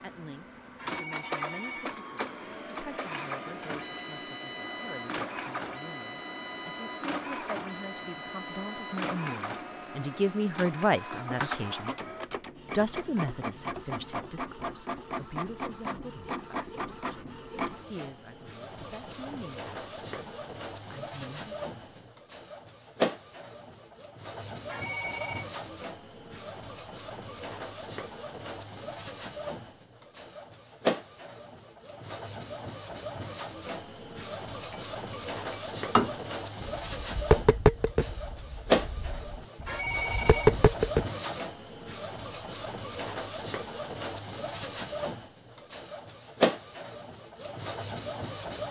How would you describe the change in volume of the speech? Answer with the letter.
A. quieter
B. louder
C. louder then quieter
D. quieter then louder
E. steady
C.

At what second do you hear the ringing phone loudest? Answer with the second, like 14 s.
40 s.